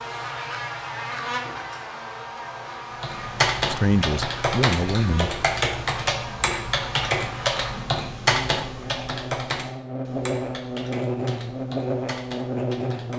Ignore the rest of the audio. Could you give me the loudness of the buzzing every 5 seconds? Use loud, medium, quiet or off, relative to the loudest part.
medium, medium, loud.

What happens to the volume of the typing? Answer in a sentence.
The loudness of the typing goes down.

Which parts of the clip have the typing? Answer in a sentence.
The typing can be heard from 3.0 to 13.1 s.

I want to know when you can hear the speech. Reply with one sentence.
The speech can be heard from 3.7 to 5.5 s.